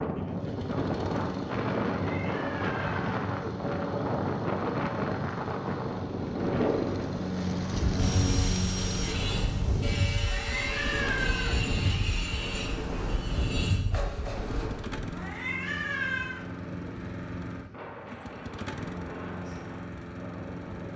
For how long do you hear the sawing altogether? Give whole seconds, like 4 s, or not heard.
7 s.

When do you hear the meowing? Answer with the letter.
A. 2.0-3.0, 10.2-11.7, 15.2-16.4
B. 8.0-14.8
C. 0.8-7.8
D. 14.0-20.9
A.